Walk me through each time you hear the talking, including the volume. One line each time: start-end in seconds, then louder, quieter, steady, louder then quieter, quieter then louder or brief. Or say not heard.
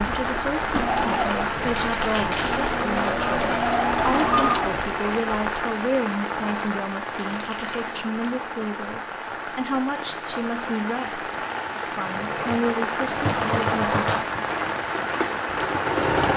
0.0-14.3 steady.